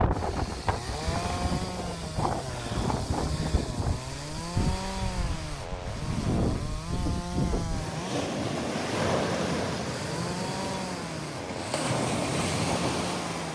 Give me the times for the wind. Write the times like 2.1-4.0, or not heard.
0.0-13.5.